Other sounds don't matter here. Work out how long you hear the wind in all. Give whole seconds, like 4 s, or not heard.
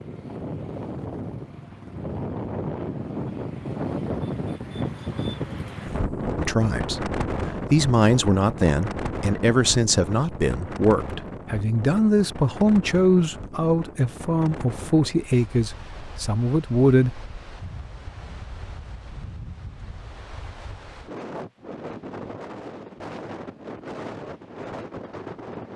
26 s.